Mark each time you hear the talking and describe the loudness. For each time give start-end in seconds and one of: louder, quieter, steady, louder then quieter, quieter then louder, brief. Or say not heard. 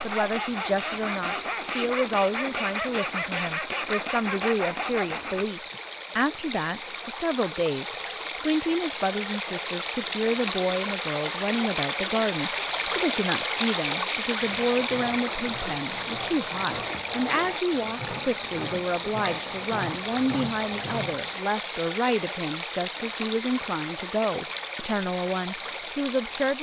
0.0-26.5 steady.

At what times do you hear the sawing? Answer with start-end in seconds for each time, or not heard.
0.0-5.8, 14.3-21.4.